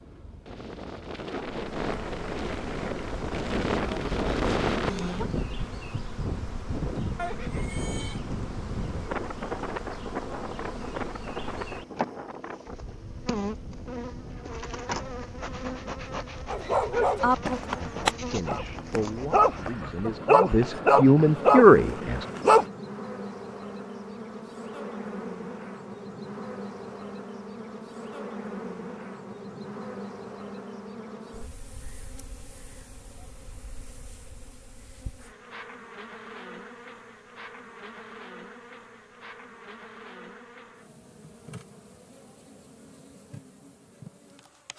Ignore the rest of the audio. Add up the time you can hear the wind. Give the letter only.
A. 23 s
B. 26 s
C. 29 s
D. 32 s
A.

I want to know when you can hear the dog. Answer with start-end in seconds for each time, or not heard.
16.5-22.6.